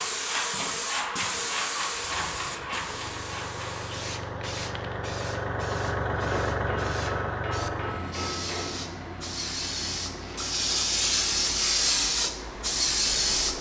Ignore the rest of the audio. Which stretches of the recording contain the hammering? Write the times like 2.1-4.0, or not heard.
6.2-8.8.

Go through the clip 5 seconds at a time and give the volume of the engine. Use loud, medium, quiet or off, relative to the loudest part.
medium, loud, quiet.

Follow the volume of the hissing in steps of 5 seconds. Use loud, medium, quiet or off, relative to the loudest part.
medium, quiet, loud.